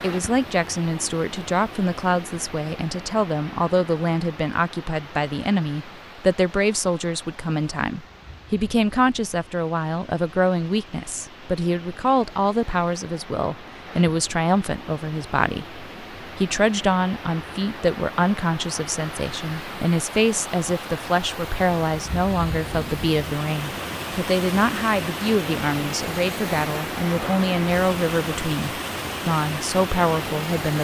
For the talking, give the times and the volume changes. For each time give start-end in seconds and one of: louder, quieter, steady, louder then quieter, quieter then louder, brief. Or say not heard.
0.0-30.7 steady.